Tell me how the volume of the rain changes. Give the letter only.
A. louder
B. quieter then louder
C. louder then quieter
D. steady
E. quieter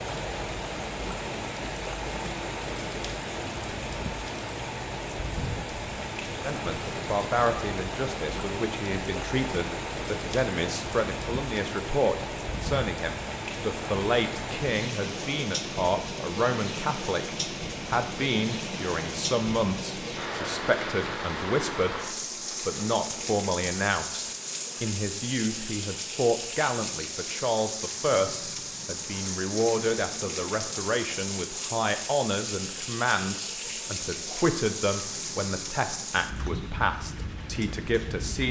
D.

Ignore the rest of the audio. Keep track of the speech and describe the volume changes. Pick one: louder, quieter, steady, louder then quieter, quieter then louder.
steady.